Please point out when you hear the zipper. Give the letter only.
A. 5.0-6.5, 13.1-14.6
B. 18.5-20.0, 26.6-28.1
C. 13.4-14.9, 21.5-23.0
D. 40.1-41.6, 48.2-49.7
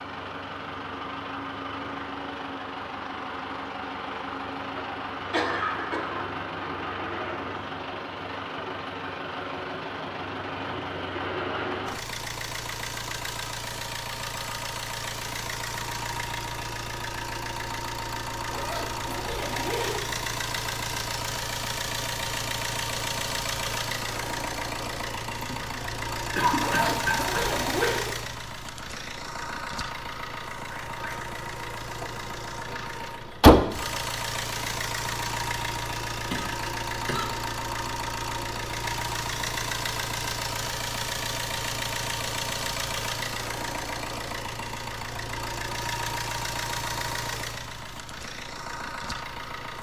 B.